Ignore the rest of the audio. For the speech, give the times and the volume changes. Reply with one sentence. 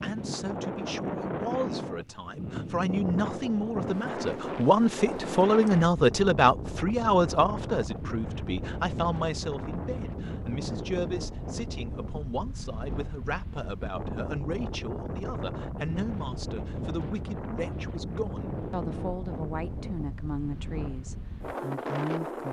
You can hear the speech from 0.0 to 22.4 s, getting louder then quieter.